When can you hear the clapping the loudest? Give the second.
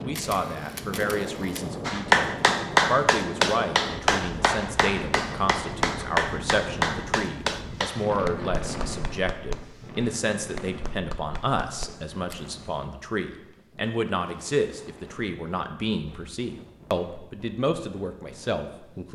2 s.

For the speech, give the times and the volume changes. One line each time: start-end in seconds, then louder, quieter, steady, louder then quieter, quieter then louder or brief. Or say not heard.
0.0-19.1 steady.